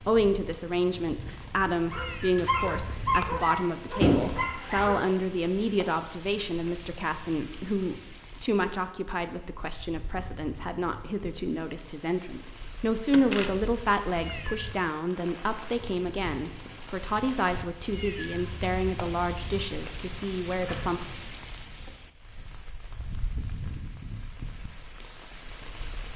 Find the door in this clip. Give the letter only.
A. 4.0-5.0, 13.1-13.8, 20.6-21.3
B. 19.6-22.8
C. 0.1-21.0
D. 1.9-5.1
A.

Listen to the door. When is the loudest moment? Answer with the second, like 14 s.
4 s.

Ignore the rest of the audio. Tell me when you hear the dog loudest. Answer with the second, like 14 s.
3 s.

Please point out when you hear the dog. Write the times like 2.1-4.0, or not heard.
1.9-5.1.